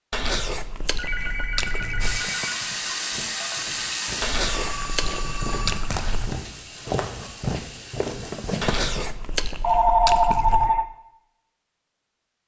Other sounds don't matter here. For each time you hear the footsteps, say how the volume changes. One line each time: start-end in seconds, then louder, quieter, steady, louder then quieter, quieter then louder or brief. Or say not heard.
1.1-9.1 louder.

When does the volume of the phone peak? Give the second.
10 s.